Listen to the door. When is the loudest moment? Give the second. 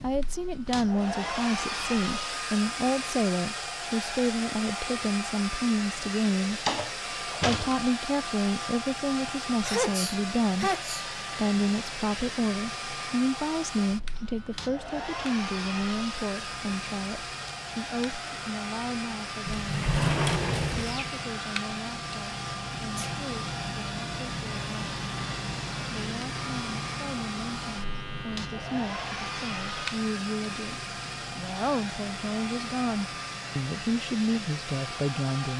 20 s.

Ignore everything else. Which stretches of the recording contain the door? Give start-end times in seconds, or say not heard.
6.5-7.8, 19.4-21.2.